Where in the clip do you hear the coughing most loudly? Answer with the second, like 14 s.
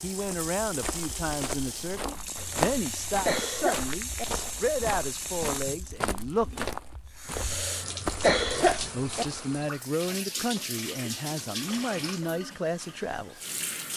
8 s.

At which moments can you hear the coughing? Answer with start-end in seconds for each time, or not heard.
2.4-4.2, 7.3-9.2.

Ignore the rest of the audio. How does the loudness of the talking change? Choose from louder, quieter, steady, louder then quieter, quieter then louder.
steady.